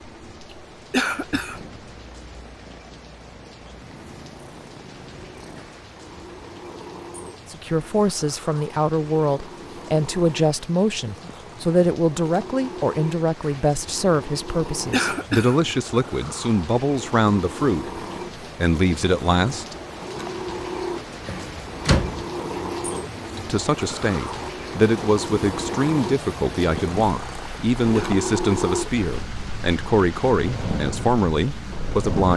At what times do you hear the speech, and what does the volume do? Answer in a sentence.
You can hear the speech from 7.5 to 19.8 s, at a steady volume; and from 23.4 to 32.3 s, at a steady volume.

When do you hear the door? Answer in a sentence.
You can hear the door from 21.2 to 22.2 s.